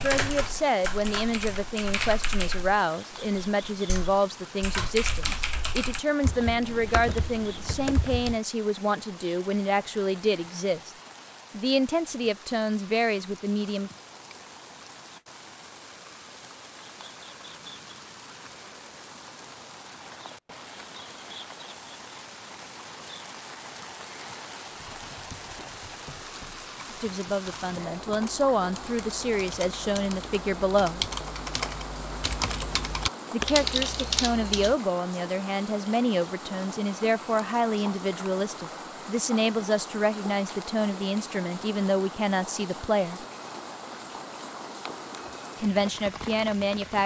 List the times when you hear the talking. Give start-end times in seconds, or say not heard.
0.0-10.9, 11.5-13.9, 27.0-31.1, 33.3-43.2, 45.6-47.0.